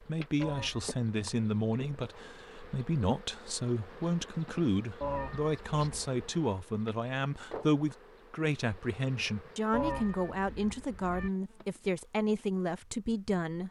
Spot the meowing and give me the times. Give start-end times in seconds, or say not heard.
0.4-0.9, 5.0-6.2, 9.7-11.3.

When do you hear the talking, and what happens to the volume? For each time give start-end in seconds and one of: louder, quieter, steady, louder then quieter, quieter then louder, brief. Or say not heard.
0.0-13.6 steady.